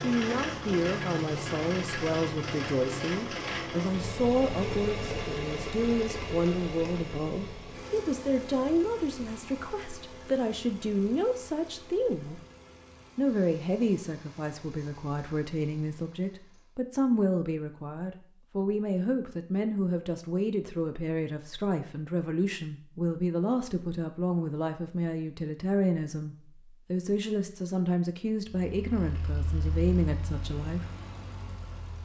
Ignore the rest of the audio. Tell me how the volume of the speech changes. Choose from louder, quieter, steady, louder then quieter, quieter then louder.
steady.